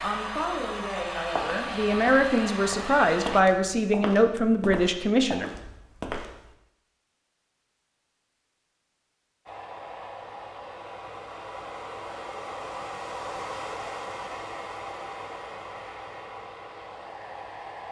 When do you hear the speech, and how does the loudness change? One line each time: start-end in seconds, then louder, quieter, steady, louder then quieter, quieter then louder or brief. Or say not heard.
0.0-5.5 louder.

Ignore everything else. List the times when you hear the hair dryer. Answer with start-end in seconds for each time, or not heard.
0.0-3.5, 9.4-17.8.